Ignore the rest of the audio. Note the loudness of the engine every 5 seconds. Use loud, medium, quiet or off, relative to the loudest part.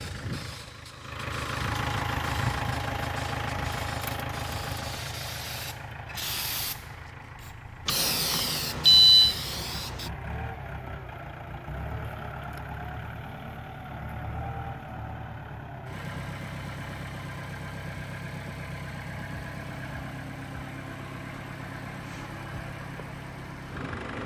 loud, medium, medium, medium, medium.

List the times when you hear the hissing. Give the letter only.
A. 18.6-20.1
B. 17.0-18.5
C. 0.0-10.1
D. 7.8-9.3
C.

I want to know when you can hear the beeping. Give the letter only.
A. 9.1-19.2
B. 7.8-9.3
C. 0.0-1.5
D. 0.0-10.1
B.